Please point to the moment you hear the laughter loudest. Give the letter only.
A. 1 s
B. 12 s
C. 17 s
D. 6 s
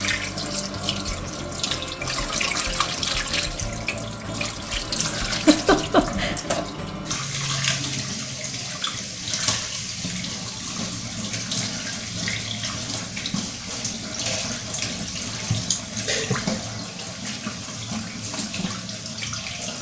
D.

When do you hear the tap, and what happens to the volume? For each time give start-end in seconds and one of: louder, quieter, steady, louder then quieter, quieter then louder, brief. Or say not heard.
0.0-19.7 steady.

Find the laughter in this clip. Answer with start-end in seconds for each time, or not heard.
5.2-6.4, 15.7-16.4.